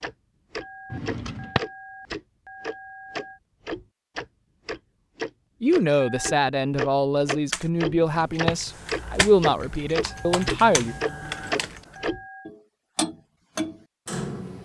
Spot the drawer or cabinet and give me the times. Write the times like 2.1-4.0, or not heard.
0.9-1.6, 7.8-8.7.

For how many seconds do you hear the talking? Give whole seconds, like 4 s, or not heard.
5 s.